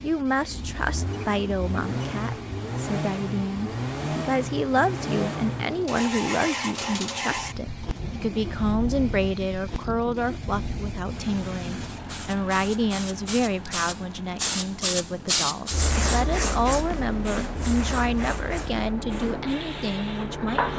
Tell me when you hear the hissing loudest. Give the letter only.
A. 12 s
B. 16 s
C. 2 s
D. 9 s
B.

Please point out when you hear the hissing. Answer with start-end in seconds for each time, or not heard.
0.0-20.7.